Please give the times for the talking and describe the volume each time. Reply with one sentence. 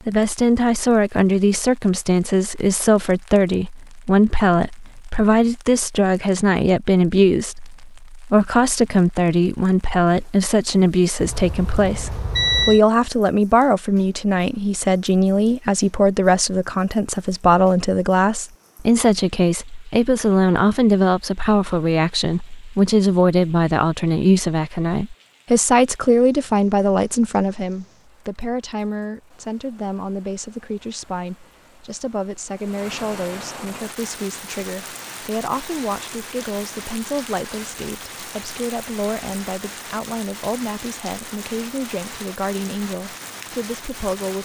You can hear the talking from 0.1 to 44.4 s, getting quieter.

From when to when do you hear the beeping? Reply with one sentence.
The beeping can be heard from 11.2 to 12.8 s.